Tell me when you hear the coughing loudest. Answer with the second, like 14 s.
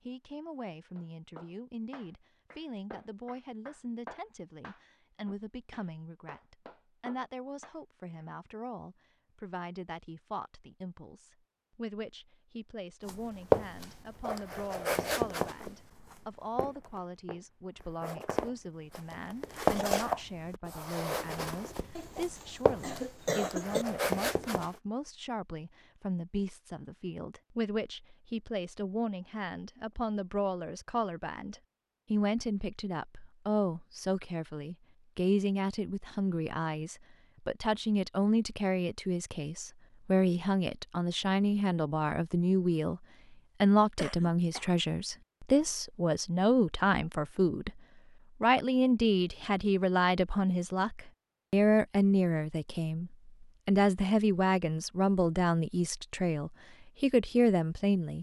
23 s.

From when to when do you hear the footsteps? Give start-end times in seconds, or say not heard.
13.1-24.8.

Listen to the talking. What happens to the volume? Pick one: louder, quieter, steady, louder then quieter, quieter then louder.
louder.